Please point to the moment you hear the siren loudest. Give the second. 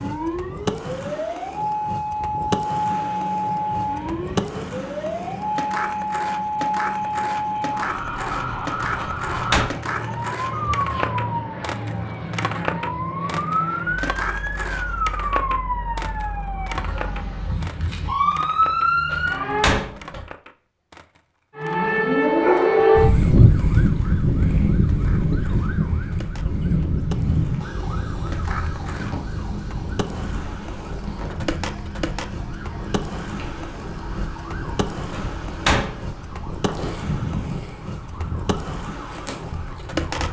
23 s.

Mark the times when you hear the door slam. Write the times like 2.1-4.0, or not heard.
8.9-9.7, 19.1-20.2, 35.1-36.1.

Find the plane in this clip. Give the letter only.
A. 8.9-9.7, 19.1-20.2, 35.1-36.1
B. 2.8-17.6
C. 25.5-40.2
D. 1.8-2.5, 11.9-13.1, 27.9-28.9
B.